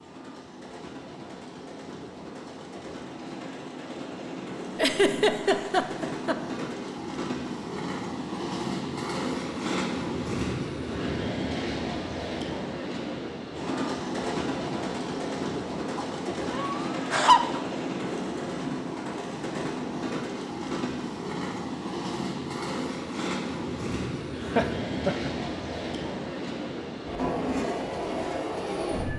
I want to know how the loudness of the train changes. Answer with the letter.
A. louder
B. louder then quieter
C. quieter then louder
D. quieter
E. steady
A.